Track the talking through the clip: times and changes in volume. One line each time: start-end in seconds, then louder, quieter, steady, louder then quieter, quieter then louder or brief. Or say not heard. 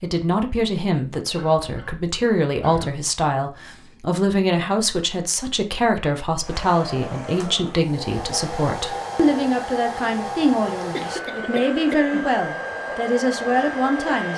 0.0-14.3 steady.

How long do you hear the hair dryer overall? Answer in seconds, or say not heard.
8 s.